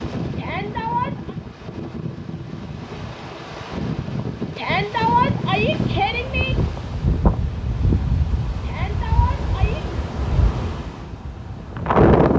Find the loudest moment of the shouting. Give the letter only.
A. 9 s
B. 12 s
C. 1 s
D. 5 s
D.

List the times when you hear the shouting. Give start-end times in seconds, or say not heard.
0.3-1.4, 4.5-6.5, 8.6-9.8.